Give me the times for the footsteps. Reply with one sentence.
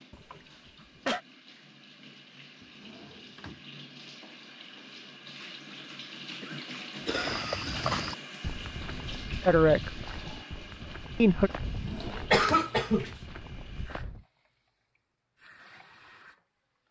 You can hear the footsteps from 7.0 to 14.2 s.